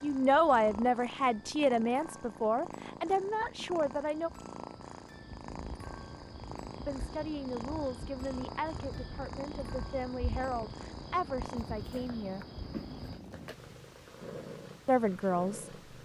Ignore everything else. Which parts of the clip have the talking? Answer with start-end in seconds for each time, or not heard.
0.0-4.3, 6.8-12.4, 14.8-16.0.